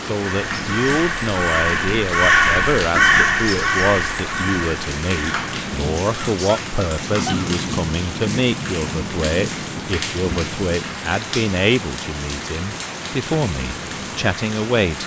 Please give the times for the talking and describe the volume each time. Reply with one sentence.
You can hear the talking from 0.0 to 15.0 s, at a steady volume.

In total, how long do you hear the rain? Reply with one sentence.
You can hear the rain for 15 seconds altogether.